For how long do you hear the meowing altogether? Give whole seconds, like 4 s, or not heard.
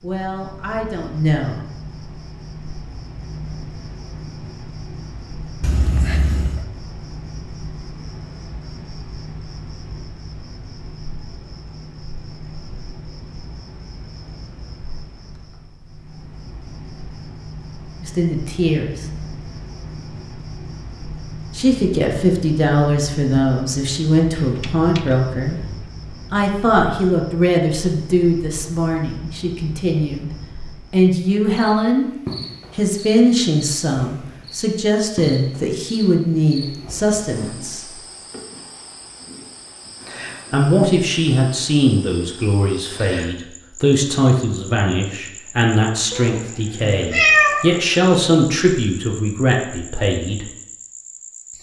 4 s.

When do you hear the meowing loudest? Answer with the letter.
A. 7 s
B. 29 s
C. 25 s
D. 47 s
D.